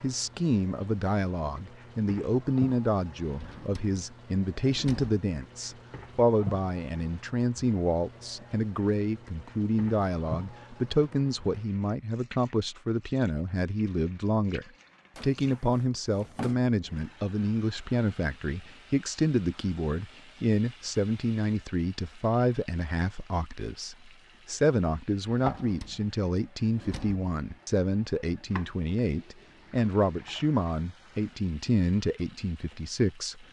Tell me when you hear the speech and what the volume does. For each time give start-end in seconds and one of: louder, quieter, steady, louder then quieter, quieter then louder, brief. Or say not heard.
0.0-33.4 steady.